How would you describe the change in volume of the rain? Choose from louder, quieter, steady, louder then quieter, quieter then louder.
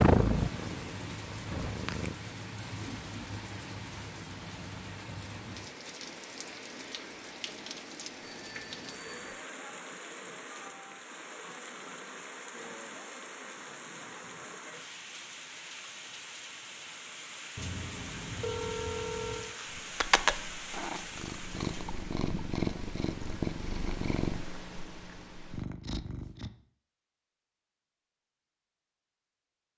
steady.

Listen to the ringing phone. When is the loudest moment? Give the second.
19 s.